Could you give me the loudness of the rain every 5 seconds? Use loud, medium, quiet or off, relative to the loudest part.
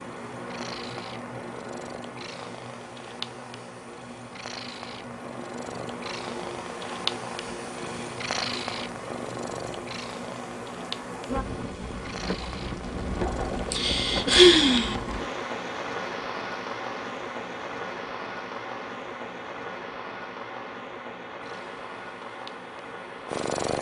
medium, medium, loud, loud, medium.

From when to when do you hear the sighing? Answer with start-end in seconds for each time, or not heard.
13.7-14.9.